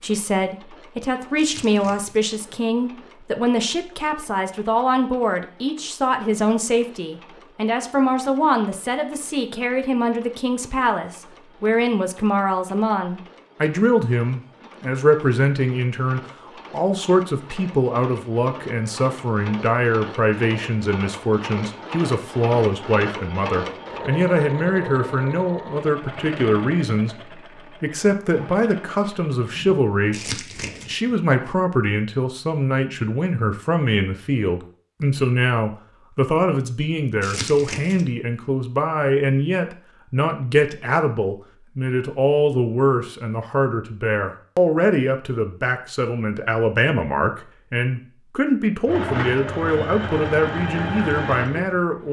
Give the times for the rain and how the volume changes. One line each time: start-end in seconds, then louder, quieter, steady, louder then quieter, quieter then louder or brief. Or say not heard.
not heard.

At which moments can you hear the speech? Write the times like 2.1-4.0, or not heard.
0.0-52.0.